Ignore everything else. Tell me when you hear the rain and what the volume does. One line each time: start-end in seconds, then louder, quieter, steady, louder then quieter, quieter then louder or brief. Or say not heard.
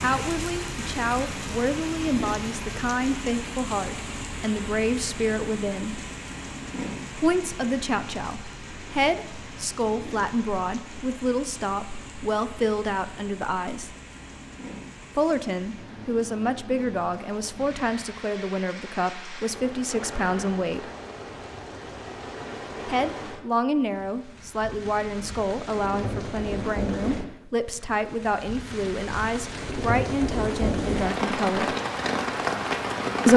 0.0-33.3 quieter then louder.